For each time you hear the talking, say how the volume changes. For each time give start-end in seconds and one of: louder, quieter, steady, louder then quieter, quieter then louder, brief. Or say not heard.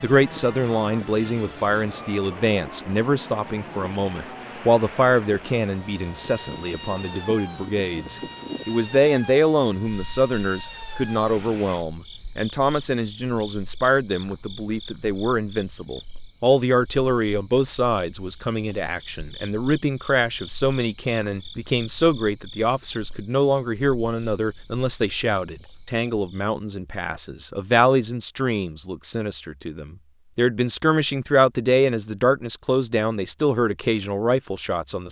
0.0-35.0 steady.